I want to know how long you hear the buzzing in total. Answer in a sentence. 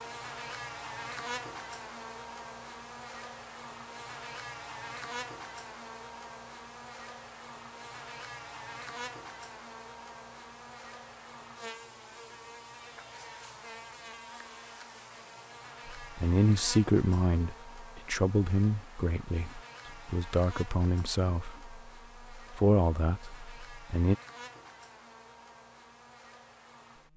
You can hear the buzzing for 27 seconds altogether.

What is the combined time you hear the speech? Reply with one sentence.
The speech can be heard for 8 seconds in total.